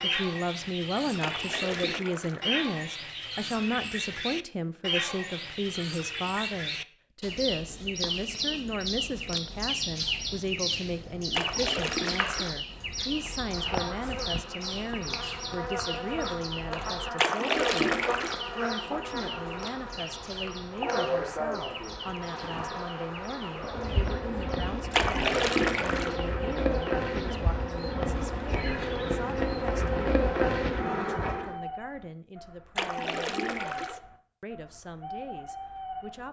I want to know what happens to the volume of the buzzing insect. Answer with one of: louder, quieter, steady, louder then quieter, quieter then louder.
louder.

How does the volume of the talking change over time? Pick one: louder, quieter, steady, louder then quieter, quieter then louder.
quieter.